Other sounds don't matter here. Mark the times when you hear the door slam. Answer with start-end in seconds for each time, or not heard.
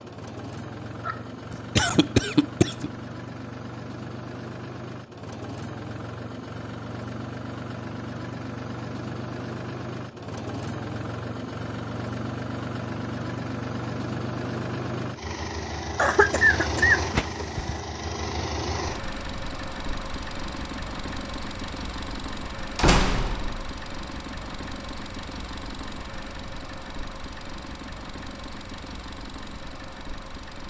22.8-23.7.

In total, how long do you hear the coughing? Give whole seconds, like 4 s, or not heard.
4 s.